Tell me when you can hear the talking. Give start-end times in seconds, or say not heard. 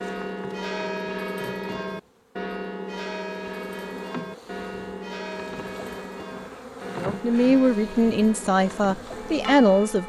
7.0-10.0.